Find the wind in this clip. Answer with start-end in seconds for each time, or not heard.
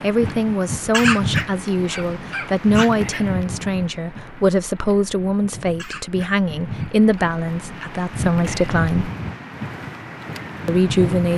0.0-11.3.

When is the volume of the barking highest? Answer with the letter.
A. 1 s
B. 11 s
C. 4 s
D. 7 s
A.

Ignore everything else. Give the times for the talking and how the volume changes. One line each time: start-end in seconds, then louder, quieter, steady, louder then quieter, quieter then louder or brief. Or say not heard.
0.0-9.1 steady
10.7-11.3 brief.